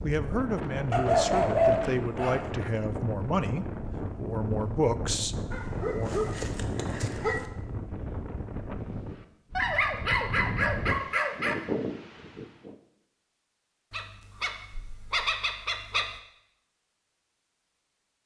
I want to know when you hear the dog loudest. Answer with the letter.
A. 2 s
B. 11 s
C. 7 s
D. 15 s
A.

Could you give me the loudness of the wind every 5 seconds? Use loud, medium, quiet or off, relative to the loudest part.
loud, loud, loud, off.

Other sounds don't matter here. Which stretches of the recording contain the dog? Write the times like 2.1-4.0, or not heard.
0.9-2.5, 5.5-7.5, 9.6-11.6, 13.9-16.1.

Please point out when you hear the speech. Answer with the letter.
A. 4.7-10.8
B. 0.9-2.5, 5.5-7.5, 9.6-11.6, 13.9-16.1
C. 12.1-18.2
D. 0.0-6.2
D.